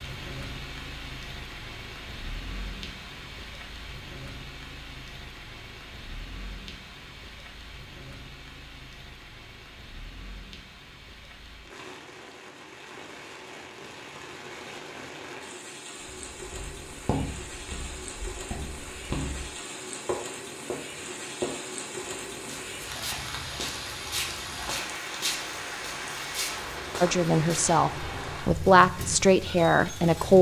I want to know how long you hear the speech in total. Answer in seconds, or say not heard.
3 s.